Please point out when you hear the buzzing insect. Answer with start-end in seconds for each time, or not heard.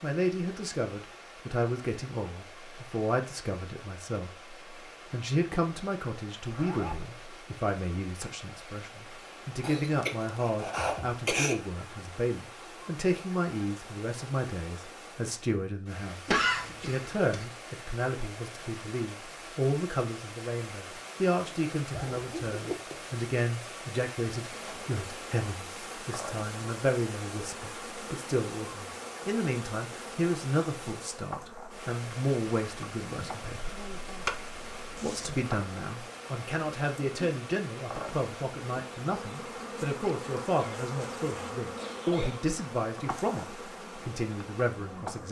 24.5-45.2.